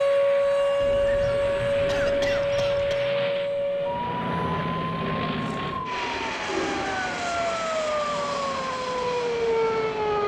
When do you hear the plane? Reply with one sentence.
The plane can be heard from 0.0 to 10.2 s.